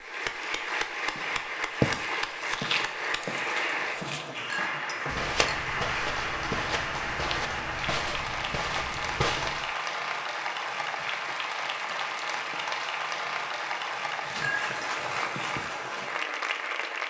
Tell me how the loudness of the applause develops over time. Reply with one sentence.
The volume of the applause stays about the same.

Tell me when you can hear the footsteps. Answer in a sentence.
You can hear the footsteps from 1.1 to 9.7 s.